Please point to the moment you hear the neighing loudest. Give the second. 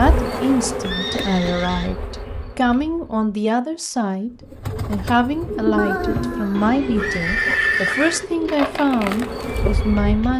8 s.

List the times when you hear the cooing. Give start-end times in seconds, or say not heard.
4.3-10.3.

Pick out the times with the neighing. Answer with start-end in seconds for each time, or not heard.
0.8-1.9, 5.8-8.2.